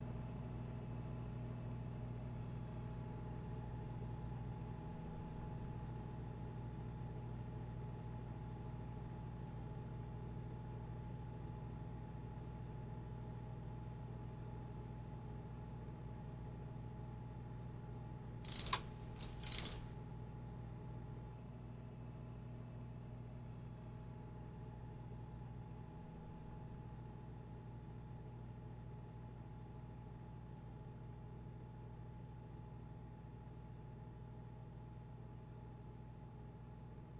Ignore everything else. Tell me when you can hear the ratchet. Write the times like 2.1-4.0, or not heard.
18.4-19.8.